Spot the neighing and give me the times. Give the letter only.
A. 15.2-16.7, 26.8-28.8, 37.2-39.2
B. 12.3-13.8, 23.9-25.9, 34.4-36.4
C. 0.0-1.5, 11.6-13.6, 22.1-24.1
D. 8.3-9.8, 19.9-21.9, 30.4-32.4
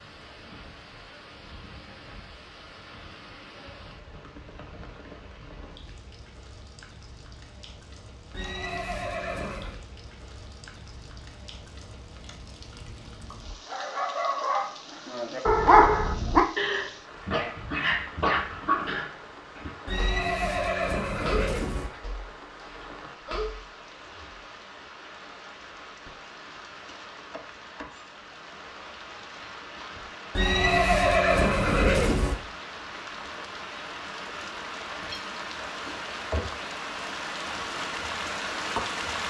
D.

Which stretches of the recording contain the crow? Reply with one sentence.
You can't hear the crow here.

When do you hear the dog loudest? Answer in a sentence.
The loudest moment of the dog is at 16 seconds.